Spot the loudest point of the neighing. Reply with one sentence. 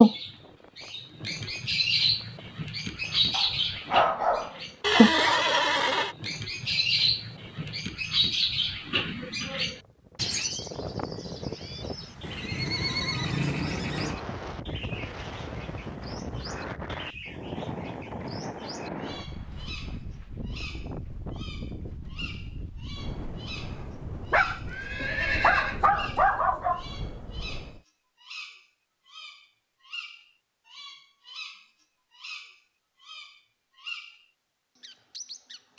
The volume of the neighing peaks at 5 seconds.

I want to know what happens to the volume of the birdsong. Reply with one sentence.
The volume of the birdsong goes down.